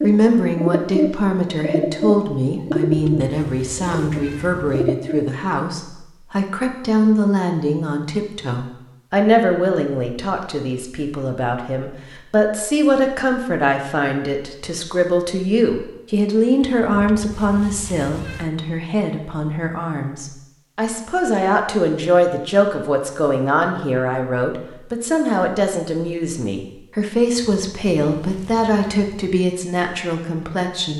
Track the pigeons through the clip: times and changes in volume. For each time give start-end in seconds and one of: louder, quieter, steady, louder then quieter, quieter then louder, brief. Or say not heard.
0.0-5.2 quieter.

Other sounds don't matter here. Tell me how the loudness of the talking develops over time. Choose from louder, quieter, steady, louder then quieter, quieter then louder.
steady.